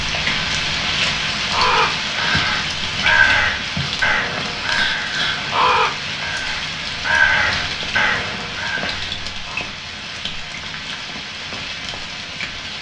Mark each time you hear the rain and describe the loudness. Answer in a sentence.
You can hear the rain from 0.0 to 12.7 s, getting quieter.